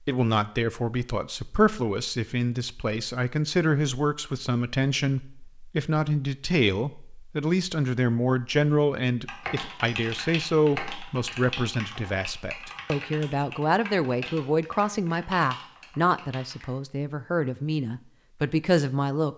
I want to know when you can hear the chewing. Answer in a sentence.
You can't hear the chewing here.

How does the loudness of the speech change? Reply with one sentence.
The volume of the speech stays about the same.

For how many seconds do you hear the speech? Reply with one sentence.
The speech can be heard for 19 seconds in total.